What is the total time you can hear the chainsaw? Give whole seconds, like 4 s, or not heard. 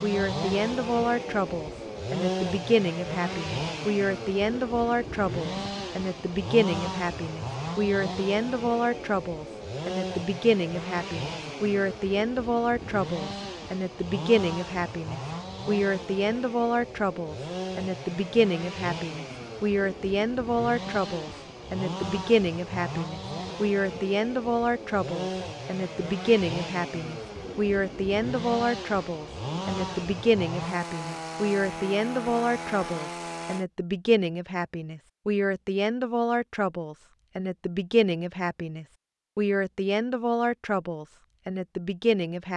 34 s.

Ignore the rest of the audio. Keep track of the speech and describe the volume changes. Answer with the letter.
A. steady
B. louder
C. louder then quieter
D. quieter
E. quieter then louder
A.